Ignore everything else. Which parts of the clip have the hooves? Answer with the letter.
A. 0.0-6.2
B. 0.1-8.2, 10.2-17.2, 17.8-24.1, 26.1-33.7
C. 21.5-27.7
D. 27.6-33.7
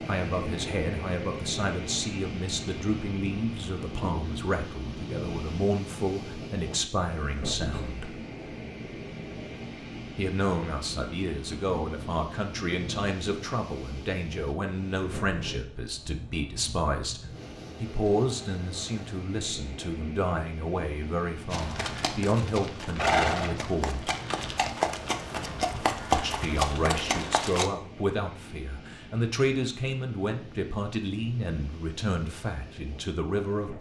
C.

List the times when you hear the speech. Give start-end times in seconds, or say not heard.
0.1-8.2, 10.2-17.2, 17.8-24.1, 26.1-33.7.